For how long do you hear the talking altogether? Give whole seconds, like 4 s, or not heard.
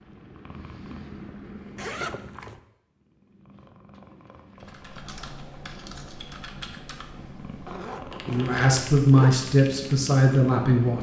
3 s.